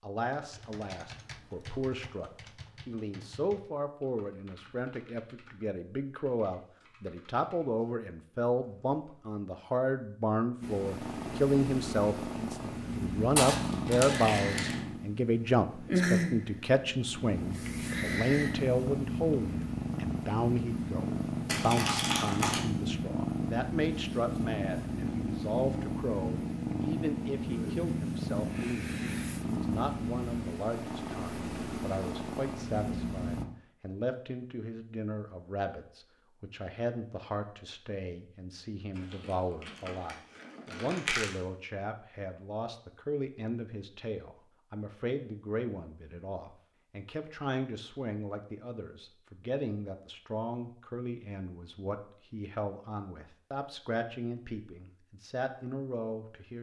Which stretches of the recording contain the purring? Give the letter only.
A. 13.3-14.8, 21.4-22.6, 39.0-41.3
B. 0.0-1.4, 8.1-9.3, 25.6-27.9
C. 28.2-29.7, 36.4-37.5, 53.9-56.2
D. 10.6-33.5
D.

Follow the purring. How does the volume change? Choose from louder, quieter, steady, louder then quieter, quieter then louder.
steady.